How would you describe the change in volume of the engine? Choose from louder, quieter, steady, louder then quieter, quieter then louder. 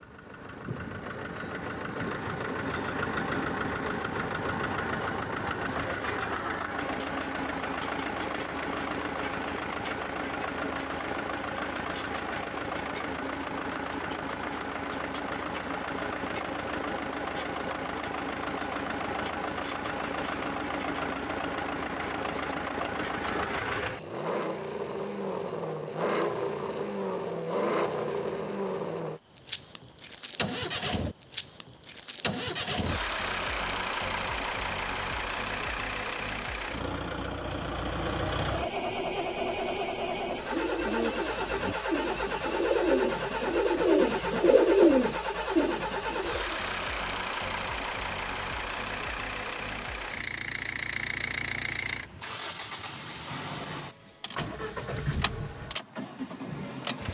steady.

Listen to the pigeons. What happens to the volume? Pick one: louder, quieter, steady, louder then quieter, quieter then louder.
louder then quieter.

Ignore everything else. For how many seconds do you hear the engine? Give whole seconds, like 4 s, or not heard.
57 s.